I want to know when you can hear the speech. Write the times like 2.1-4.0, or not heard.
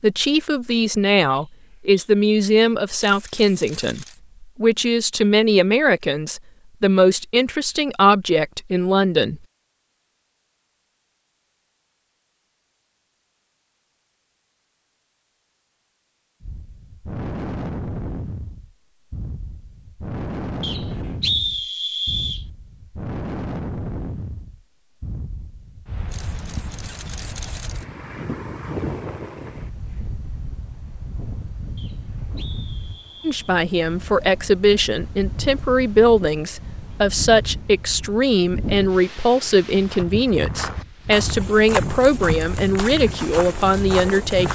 0.0-9.4, 33.2-44.5.